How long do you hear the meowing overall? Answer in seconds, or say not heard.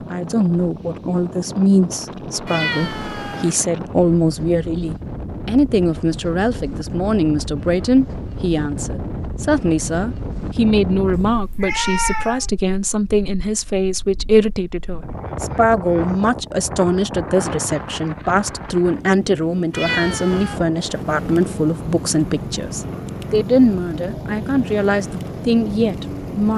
3 s.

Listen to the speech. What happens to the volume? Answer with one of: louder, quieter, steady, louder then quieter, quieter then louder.
steady.